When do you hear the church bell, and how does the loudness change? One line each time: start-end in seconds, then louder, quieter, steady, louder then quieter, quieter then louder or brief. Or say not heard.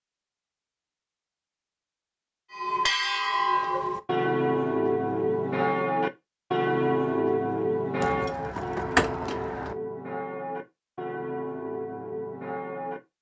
2.5-13.0 quieter.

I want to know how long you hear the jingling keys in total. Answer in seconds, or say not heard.
2 s.